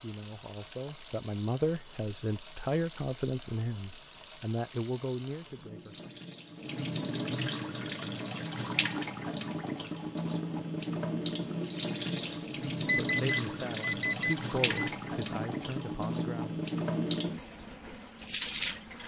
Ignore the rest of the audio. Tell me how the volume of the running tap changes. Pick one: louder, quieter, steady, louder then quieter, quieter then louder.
louder.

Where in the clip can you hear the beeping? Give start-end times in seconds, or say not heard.
12.8-14.9.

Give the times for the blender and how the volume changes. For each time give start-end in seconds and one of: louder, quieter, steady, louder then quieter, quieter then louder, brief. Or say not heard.
not heard.